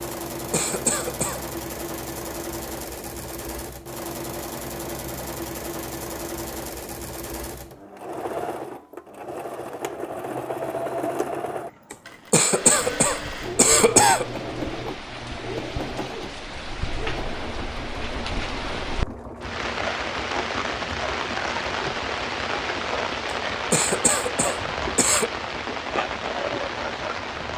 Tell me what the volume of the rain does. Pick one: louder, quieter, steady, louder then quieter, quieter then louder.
louder.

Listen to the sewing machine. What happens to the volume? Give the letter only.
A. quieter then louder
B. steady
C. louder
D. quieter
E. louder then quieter
D.